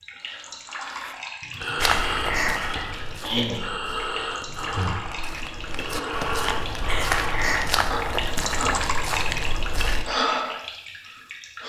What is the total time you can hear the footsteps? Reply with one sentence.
You can hear the footsteps for 8 seconds altogether.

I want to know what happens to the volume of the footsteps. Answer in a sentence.
The loudness of the footsteps goes down, then up.